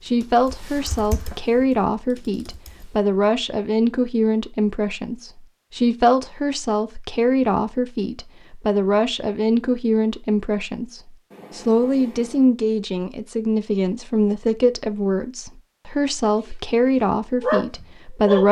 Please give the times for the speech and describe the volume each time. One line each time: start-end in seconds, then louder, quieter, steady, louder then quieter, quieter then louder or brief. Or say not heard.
0.0-18.4 steady.